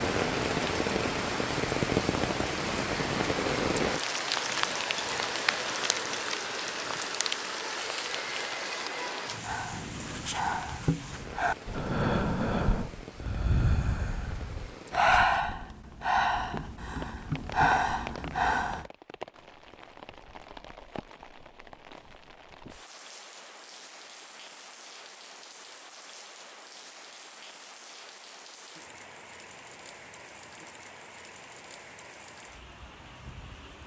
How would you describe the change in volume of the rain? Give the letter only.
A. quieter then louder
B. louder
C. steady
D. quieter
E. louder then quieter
D.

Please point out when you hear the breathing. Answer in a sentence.
The breathing can be heard from 9.4 to 18.9 s.